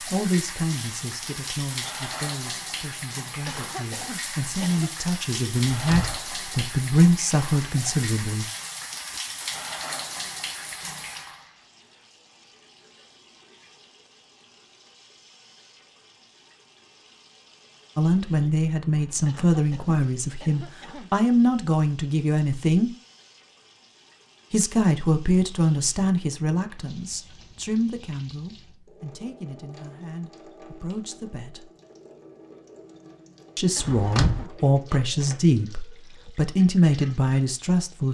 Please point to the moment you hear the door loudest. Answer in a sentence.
The volume of the door peaks at 34 seconds.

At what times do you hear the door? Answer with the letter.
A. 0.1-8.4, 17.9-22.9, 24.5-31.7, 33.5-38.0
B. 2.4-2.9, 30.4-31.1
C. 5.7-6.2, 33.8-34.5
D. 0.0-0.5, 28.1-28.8
C.